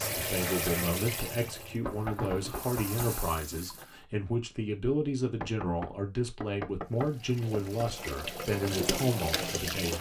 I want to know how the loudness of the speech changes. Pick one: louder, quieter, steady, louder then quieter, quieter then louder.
steady.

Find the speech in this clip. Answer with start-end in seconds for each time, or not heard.
0.0-9.9.